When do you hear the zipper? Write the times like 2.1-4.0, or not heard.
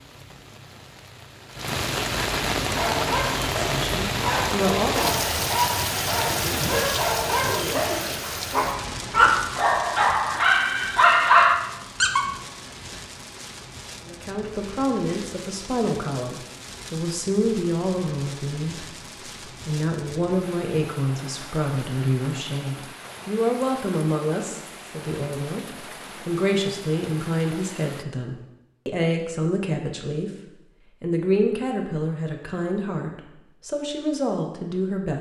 6.3-8.2.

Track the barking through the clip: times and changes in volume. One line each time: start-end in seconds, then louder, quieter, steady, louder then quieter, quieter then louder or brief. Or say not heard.
2.6-12.2 louder.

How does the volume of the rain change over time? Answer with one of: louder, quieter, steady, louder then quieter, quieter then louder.
quieter.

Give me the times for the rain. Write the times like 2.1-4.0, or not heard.
0.0-28.1.